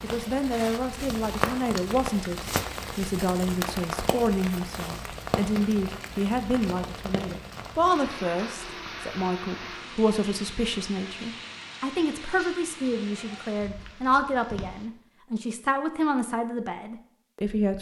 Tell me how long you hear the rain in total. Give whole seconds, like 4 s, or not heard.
15 s.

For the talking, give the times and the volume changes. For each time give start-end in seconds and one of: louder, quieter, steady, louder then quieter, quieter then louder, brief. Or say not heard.
0.0-17.7 steady.